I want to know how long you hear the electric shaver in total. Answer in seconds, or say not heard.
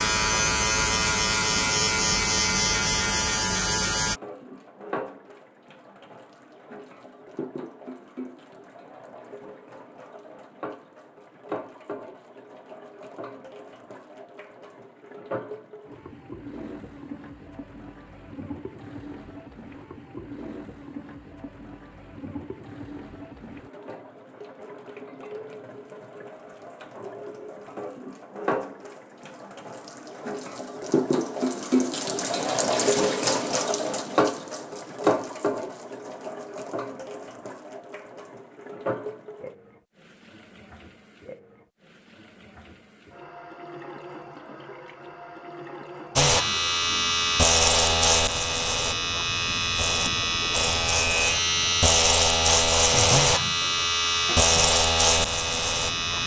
14 s.